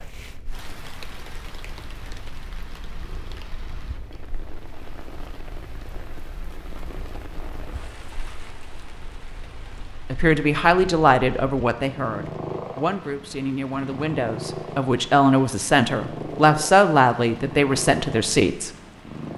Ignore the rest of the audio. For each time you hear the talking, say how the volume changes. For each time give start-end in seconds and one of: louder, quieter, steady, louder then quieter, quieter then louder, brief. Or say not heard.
10.1-18.7 quieter then louder.